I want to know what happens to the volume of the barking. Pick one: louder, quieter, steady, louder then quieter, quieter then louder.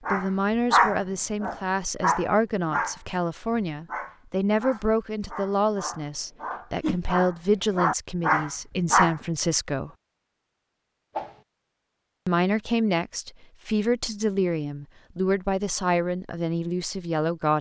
quieter then louder.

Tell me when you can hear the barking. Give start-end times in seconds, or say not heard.
0.1-9.2.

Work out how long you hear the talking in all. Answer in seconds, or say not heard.
15 s.